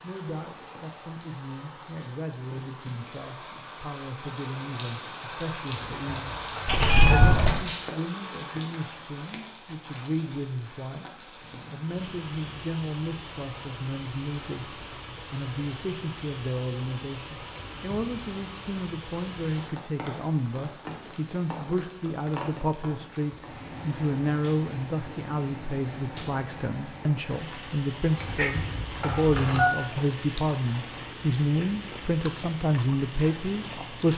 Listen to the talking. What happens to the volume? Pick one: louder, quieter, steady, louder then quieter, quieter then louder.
louder.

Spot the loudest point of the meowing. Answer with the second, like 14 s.
7 s.